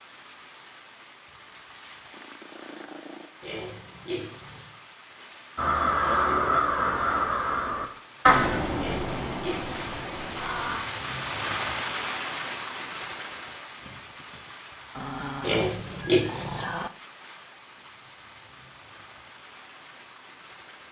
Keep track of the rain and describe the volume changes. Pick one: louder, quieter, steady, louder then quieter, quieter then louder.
louder then quieter.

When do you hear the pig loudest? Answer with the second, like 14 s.
16 s.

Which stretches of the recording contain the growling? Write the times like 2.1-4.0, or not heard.
2.1-3.3, 14.9-16.9.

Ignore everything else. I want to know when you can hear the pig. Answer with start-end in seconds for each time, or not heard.
3.4-4.7, 8.8-9.8, 15.4-16.6.